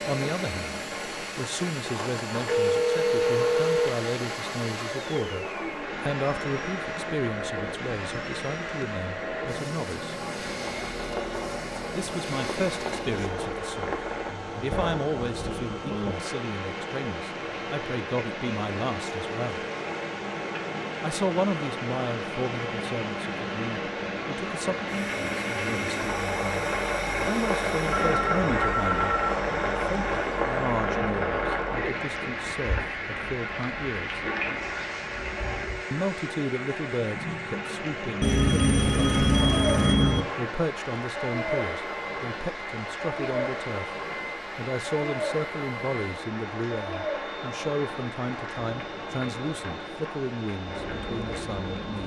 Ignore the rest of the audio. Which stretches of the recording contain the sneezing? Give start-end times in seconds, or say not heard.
not heard.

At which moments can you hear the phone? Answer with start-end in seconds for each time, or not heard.
2.5-4.1, 27.9-29.4, 38.2-40.2.